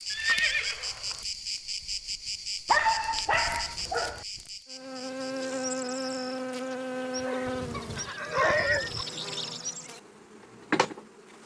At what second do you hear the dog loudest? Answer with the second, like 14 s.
3 s.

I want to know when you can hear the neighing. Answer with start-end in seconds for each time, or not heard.
0.1-1.2, 8.0-8.9.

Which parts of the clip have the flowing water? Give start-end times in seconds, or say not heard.
not heard.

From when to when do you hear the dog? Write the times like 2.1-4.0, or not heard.
2.6-4.2, 7.2-9.1.